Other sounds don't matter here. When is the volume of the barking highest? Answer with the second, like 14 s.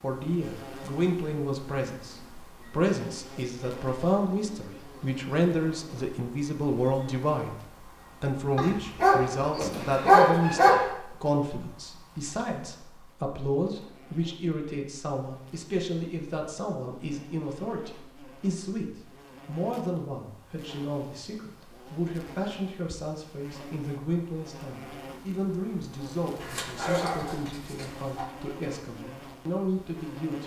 10 s.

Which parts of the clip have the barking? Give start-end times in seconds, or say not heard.
8.6-10.8, 26.4-28.2.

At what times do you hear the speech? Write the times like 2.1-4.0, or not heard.
0.0-7.6, 8.2-30.4.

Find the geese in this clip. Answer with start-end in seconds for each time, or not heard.
not heard.